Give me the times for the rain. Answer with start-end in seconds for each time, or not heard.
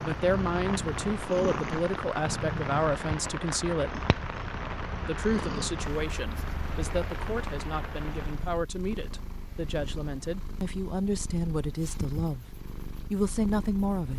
0.0-8.5.